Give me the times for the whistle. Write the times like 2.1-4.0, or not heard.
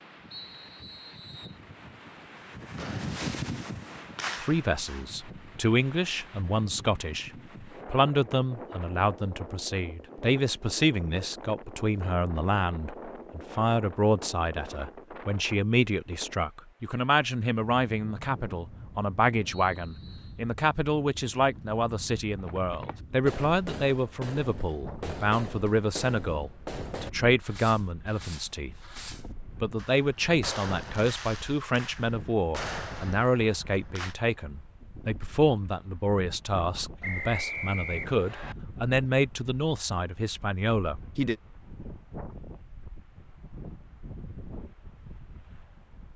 0.3-1.6, 19.5-20.4, 37.0-38.5.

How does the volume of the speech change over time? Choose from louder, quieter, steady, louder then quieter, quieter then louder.
steady.